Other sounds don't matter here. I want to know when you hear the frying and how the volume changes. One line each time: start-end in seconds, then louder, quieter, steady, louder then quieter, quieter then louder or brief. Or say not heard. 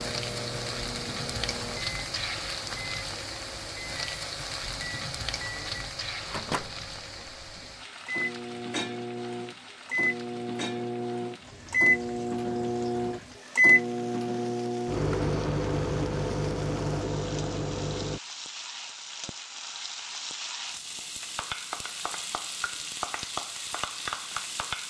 0.0-24.8 quieter then louder.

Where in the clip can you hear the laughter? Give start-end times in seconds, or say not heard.
not heard.